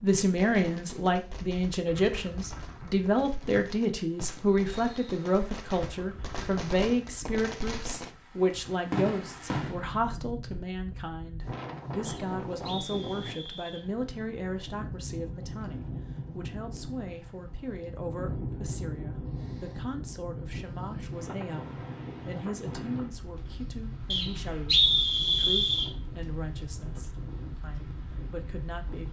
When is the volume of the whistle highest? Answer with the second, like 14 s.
25 s.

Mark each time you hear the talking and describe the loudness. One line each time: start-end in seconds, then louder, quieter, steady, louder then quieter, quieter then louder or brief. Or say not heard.
0.0-29.0 quieter.